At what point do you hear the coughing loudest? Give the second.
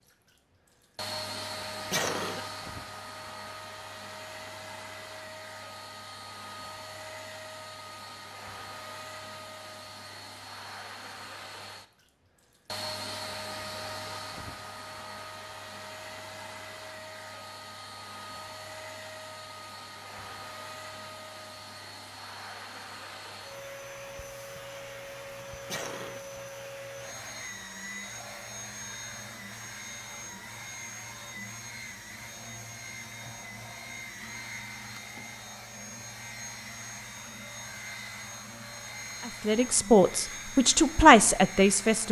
2 s.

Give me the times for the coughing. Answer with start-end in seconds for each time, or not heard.
1.9-2.5, 25.7-26.2.